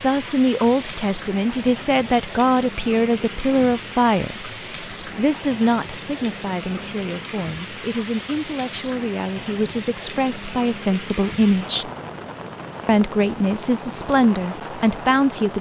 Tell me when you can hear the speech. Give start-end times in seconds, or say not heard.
0.0-11.9, 12.8-15.5.